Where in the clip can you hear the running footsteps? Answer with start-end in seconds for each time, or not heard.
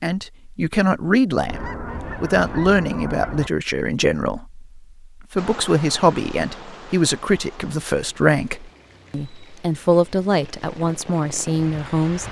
not heard.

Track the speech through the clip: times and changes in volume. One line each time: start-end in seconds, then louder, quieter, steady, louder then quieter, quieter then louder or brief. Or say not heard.
0.0-12.2 steady.